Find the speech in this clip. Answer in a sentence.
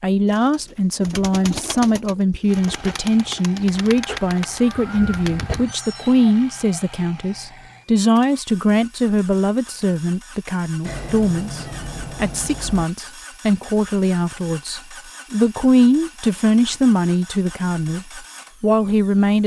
The speech can be heard from 0.0 to 19.4 s.